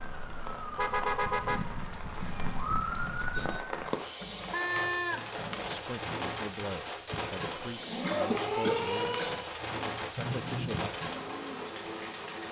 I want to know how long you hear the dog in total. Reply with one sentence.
You can't hear the dog here.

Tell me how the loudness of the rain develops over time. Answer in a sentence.
The loudness of the rain stays about the same.